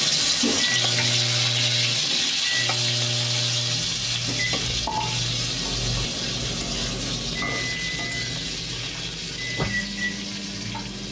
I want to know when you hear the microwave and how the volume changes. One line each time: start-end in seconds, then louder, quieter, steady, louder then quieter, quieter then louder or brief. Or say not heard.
0.0-11.0 steady.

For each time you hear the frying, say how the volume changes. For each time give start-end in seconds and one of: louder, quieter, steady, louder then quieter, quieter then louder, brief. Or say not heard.
0.0-11.0 quieter.